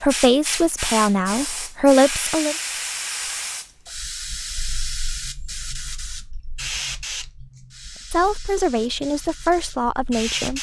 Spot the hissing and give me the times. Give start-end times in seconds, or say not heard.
0.0-10.5.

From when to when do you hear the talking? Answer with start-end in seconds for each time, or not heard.
0.0-2.5, 8.1-10.5.